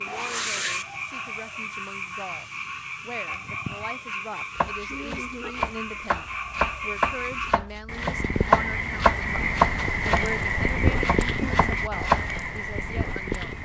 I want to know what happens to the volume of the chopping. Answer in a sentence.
The volume of the chopping goes up, then down.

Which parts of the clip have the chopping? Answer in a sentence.
The chopping can be heard from 4.5 to 12.3 s.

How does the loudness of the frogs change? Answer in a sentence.
The volume of the frogs goes up.